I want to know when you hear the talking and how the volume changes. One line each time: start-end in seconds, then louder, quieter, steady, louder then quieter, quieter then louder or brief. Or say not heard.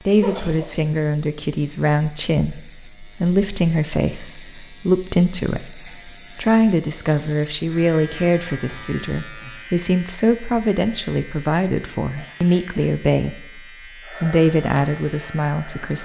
0.1-16.0 steady.